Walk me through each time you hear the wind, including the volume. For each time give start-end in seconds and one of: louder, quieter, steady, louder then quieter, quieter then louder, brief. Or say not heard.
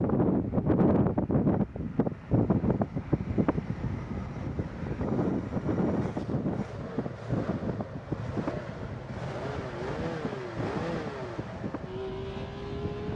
0.0-13.1 quieter.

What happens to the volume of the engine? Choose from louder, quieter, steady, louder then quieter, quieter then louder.
louder.